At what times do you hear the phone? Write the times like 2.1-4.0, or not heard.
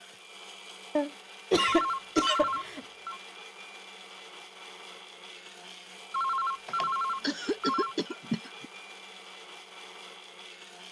1.6-3.2, 6.1-8.0.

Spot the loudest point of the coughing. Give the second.
2 s.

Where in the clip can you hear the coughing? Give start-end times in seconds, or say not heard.
0.9-2.8, 6.7-8.7.